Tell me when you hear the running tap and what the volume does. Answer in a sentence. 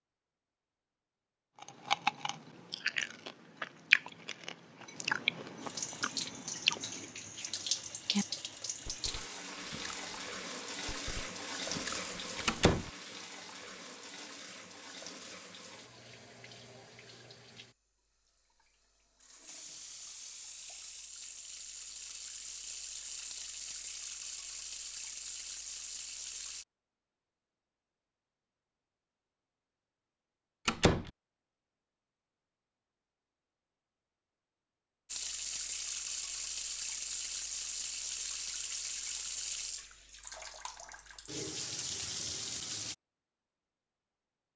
You can hear the running tap from 5.6 to 26.6 s, getting quieter then louder; and from 35.0 to 43.0 s, getting quieter then louder.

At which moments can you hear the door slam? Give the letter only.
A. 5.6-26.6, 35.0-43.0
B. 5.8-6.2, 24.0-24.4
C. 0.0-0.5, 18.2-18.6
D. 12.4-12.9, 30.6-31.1
D.